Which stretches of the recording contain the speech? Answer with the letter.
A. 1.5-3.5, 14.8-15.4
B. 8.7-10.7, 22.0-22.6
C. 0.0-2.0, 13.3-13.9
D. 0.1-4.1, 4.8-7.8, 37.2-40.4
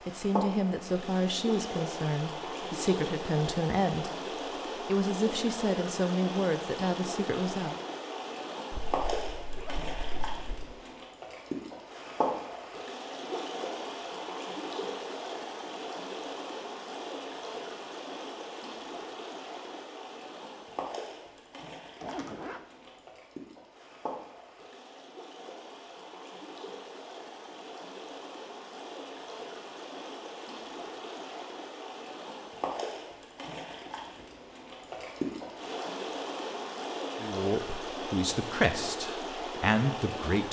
D.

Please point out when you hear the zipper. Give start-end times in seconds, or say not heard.
8.7-10.7, 22.0-22.6.